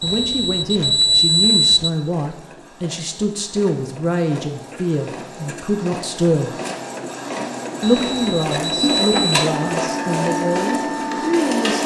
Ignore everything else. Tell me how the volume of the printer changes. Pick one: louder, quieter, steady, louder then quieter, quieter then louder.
louder.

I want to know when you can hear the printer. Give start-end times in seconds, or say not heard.
0.0-11.8.